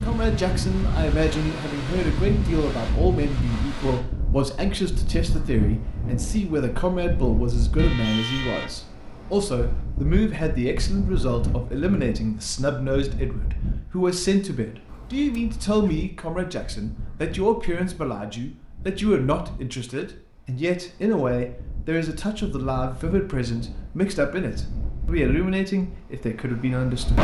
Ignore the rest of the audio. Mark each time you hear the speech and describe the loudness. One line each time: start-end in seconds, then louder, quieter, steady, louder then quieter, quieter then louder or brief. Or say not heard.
0.0-27.1 steady.